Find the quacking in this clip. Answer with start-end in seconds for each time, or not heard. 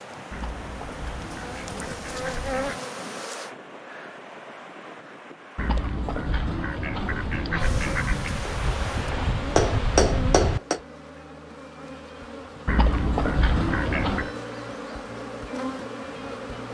0.3-2.8, 5.5-8.4, 12.7-14.3.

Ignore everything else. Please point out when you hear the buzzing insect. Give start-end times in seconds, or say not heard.
0.0-3.5, 7.5-16.6.